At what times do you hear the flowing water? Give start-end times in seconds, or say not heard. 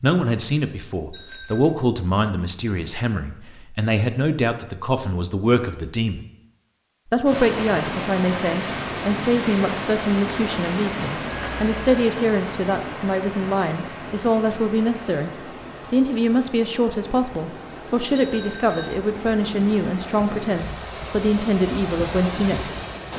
7.2-23.1.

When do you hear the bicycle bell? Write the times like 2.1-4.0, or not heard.
1.1-1.8, 11.2-12.1, 18.1-19.0.